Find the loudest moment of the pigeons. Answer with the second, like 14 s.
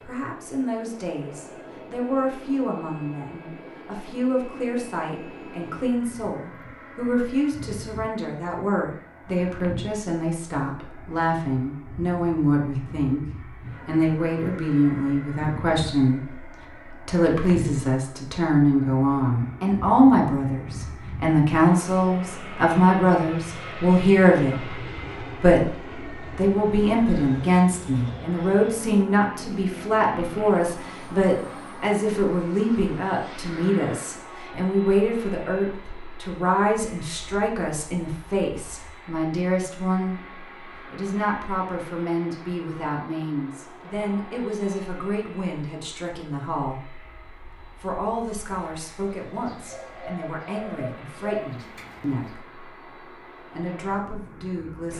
51 s.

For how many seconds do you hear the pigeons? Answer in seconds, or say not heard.
3 s.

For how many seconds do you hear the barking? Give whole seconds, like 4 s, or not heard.
not heard.